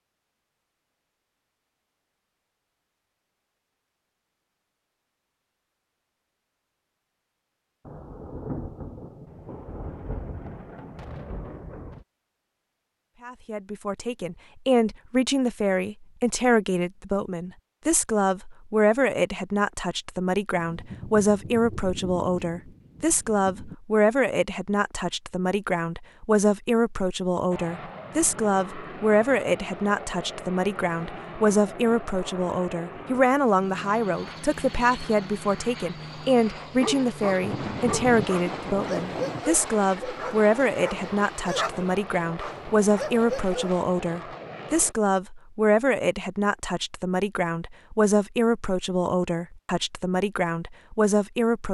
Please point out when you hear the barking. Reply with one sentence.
You can hear the barking from 36.6 to 43.9 s.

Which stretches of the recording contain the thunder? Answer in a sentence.
You can hear the thunder from 7.8 to 12.1 s, from 20.6 to 23.8 s and from 37.4 to 39.4 s.